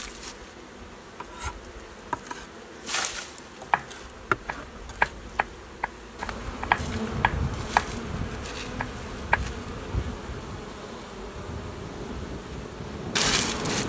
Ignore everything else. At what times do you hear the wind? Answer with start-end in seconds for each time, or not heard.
6.6-13.8.